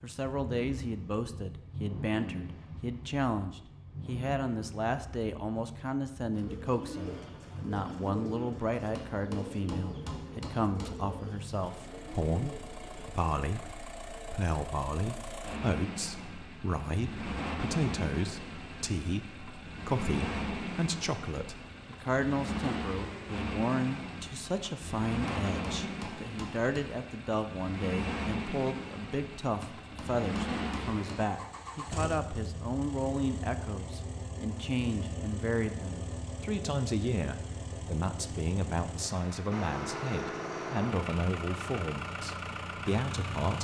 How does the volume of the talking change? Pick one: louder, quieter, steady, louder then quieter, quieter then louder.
steady.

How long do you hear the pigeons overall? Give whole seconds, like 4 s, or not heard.
8 s.